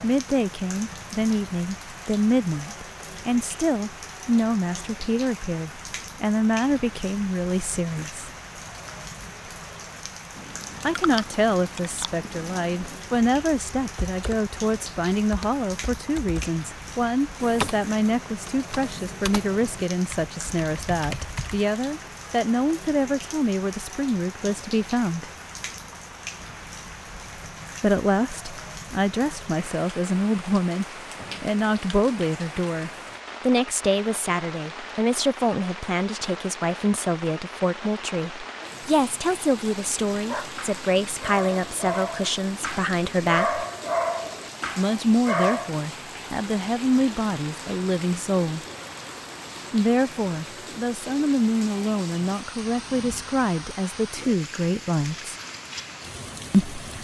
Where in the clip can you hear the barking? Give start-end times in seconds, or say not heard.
40.1-45.8.